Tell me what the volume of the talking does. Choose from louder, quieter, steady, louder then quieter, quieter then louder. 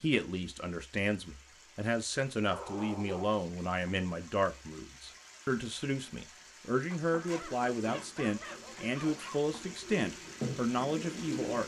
steady.